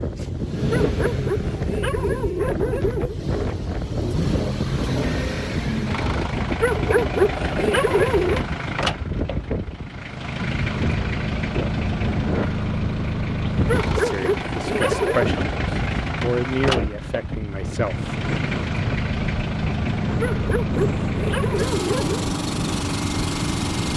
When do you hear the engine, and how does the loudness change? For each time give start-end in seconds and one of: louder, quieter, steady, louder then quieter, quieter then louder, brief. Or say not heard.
0.0-23.9 steady.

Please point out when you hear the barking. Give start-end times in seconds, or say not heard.
0.7-3.1, 6.6-8.4, 13.7-15.3, 20.2-22.2.